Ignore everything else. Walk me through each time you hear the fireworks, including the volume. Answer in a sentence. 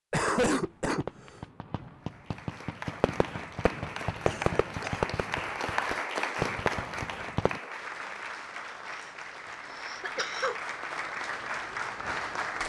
You can hear the fireworks from 0.1 to 7.6 s, getting louder.